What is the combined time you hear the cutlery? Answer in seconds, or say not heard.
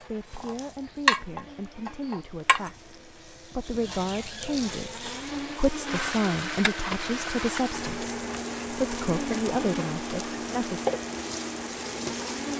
not heard.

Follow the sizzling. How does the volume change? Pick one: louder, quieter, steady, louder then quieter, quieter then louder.
quieter then louder.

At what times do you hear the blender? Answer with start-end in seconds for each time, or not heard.
0.0-12.5.